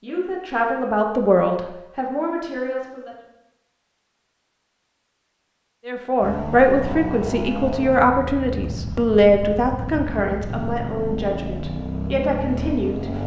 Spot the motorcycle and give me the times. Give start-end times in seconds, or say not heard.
6.2-13.2.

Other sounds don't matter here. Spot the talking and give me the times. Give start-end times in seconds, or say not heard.
0.0-3.1, 5.8-13.2.